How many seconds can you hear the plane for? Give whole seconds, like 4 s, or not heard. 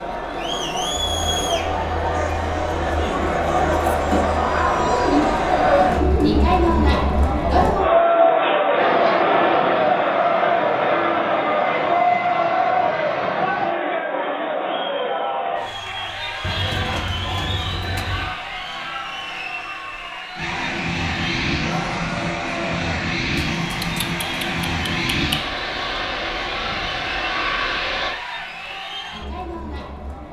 13 s.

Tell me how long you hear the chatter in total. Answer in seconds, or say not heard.
30 s.